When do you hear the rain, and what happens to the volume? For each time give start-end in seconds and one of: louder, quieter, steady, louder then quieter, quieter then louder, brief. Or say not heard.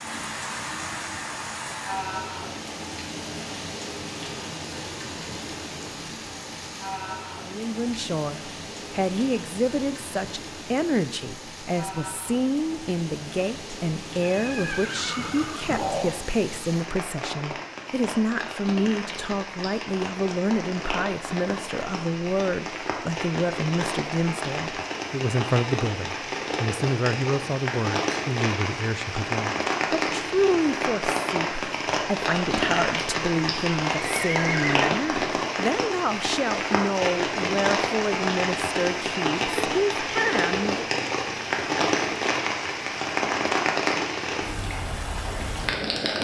0.0-46.2 louder.